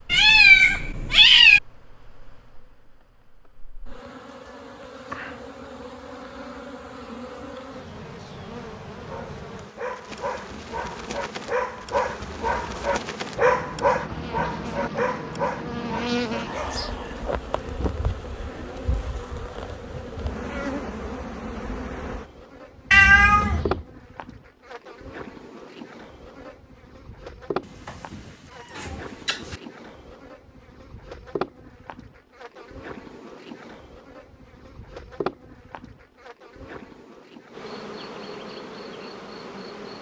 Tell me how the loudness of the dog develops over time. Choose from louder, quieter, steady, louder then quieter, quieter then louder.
louder then quieter.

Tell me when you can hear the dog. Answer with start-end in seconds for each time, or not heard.
9.1-16.9.